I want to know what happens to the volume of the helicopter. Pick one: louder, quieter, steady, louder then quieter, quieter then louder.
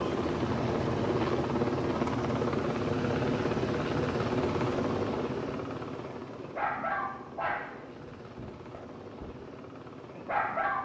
quieter.